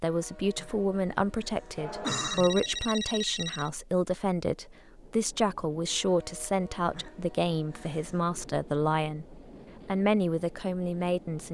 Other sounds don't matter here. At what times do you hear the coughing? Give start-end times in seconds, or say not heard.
0.6-2.5, 6.9-8.3.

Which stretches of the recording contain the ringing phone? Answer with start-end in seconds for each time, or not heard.
1.8-3.7.